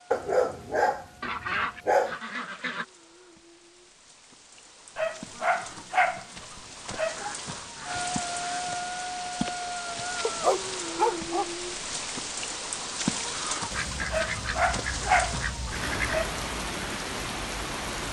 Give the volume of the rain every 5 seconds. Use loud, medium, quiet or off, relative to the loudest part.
quiet, loud, loud, loud.